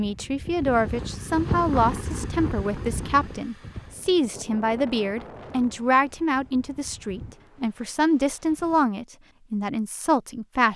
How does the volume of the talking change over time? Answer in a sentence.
The loudness of the talking stays about the same.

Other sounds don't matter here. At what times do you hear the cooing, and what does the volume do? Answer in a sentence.
You can't hear the cooing here.